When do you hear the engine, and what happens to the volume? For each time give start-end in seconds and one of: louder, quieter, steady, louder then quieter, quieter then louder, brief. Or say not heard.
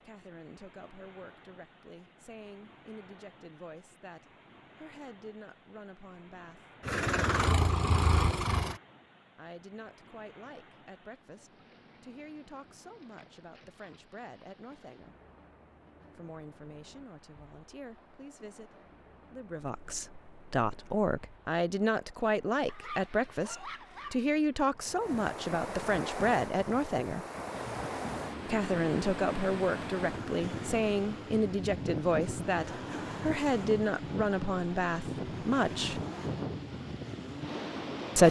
6.8-8.8 brief
27.4-38.0 steady.